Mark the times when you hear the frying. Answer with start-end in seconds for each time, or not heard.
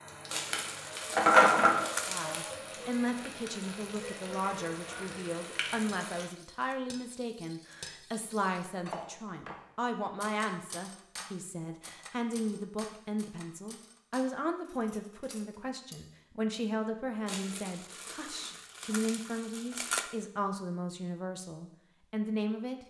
0.0-6.2.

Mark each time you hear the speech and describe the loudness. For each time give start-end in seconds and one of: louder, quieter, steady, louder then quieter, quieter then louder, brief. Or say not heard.
2.0-22.8 steady.